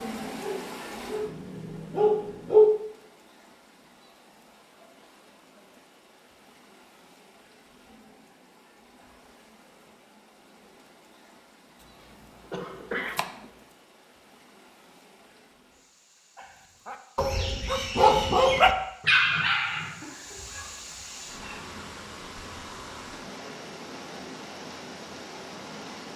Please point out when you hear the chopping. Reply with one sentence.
The chopping can be heard from 11.8 to 13.3 s.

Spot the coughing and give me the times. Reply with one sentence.
The coughing can be heard from 12.0 to 13.5 s.